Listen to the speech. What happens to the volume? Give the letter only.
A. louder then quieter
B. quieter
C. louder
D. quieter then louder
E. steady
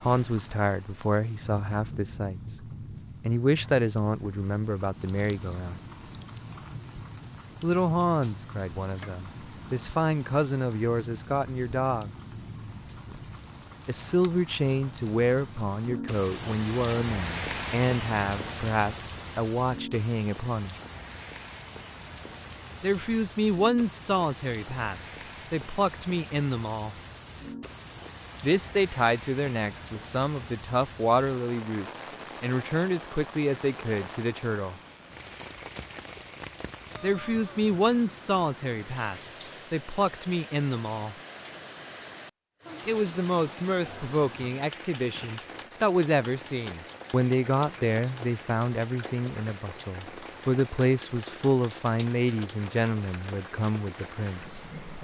E.